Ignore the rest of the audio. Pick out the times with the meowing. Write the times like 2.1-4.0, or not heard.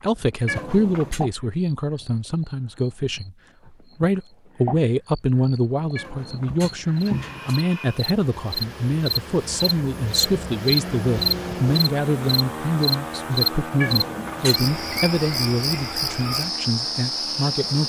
0.5-1.2, 6.0-7.7, 13.8-15.0.